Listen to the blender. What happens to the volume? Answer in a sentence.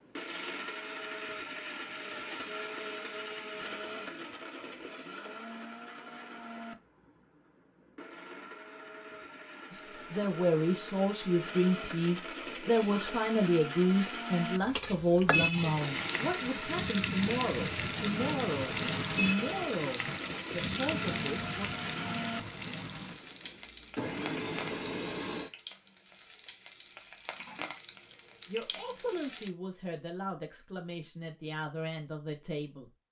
The volume of the blender goes down, then up.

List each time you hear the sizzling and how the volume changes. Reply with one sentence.
You can hear the sizzling from 14.6 to 29.5 s, getting quieter.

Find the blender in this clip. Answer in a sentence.
You can hear the blender from 0.0 to 25.6 s.